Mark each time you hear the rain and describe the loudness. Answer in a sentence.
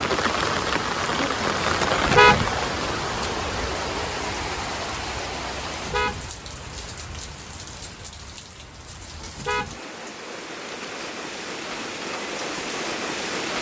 The rain can be heard from 0.0 to 13.5 s, getting quieter then louder.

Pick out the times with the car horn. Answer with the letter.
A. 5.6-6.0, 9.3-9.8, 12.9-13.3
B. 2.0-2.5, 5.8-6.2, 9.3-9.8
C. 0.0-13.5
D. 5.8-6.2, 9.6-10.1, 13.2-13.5
B.